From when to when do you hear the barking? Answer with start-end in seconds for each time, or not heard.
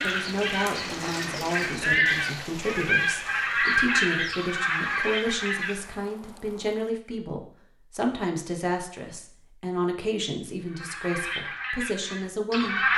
not heard.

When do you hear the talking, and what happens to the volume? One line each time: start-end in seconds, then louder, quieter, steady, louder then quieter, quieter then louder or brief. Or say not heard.
0.0-12.8 steady.